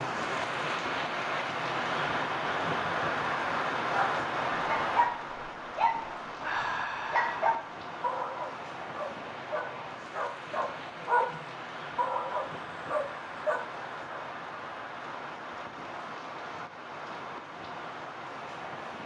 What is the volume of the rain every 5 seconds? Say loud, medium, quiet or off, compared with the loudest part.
loud, medium, medium, medium.